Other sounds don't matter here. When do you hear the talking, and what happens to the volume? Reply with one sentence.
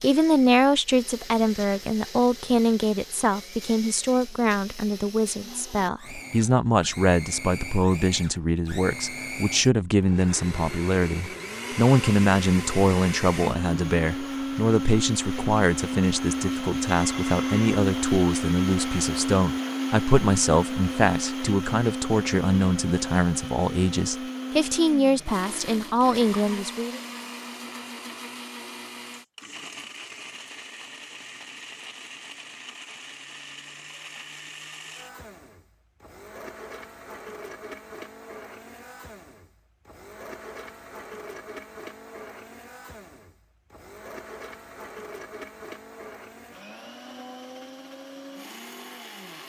You can hear the talking from 0.0 to 27.0 s, at a steady volume.